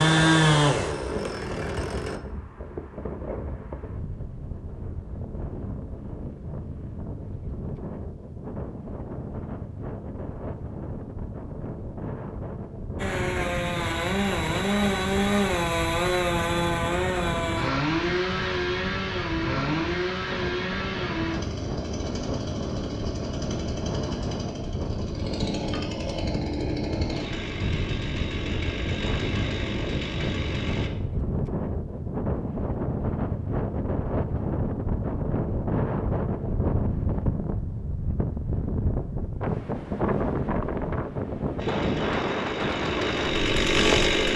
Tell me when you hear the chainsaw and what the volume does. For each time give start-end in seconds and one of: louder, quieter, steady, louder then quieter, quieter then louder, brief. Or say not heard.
0.0-2.2 brief
12.9-30.9 quieter
41.5-44.3 brief.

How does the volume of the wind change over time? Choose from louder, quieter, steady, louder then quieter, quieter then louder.
louder.